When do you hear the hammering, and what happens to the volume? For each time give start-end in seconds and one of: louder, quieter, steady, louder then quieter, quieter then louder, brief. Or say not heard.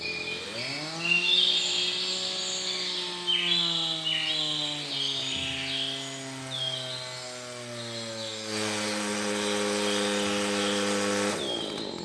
not heard.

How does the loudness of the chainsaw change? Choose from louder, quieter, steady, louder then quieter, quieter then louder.
louder.